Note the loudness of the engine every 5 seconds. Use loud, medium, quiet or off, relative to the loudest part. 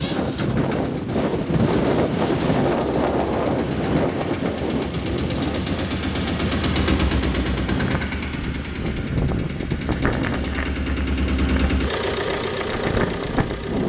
medium, loud, loud.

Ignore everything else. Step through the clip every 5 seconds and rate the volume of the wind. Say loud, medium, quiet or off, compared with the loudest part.
loud, medium, medium.